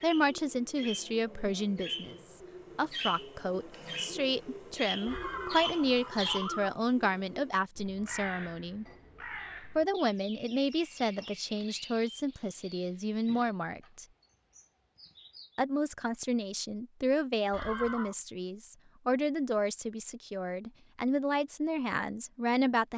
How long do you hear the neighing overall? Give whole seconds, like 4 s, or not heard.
2 s.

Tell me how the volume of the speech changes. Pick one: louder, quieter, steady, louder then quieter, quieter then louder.
steady.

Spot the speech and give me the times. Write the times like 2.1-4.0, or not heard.
0.0-8.8, 9.8-14.1, 15.6-22.9.